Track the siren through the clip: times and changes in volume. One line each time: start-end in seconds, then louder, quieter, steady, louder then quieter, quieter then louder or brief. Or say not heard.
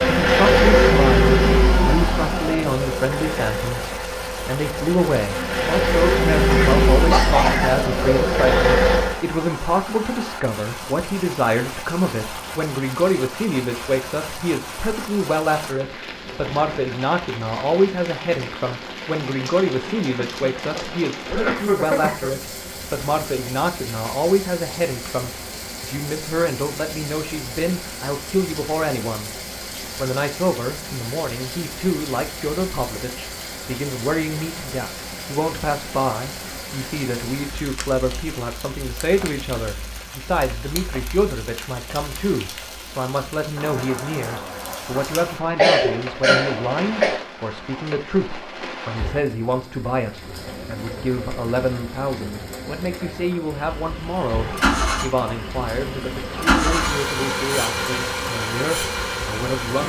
not heard.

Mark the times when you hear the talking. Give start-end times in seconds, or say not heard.
0.1-29.3, 29.9-59.8.